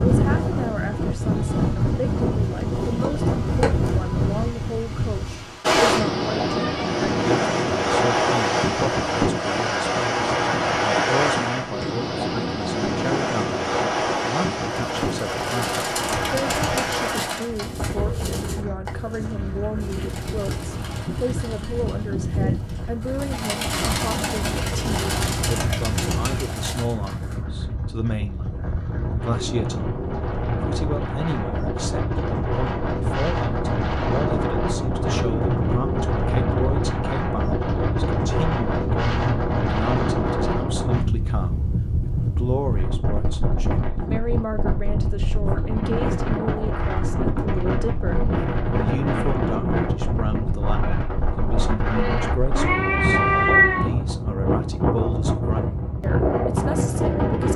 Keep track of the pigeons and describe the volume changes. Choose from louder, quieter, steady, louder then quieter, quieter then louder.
quieter then louder.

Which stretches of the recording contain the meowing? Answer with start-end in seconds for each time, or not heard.
6.5-7.0, 24.4-26.3, 52.5-53.9.